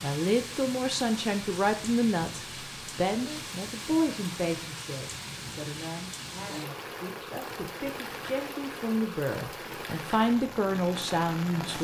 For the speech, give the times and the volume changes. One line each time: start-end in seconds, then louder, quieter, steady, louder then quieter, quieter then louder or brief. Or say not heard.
0.0-11.7 quieter then louder.